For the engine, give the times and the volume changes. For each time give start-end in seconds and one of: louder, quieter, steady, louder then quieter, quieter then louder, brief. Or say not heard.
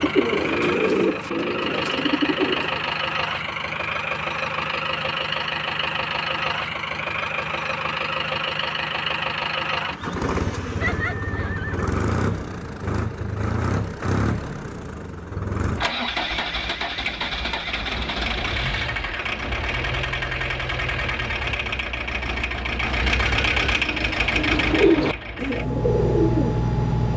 0.0-27.1 steady.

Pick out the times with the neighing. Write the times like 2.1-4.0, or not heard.
10.8-11.9.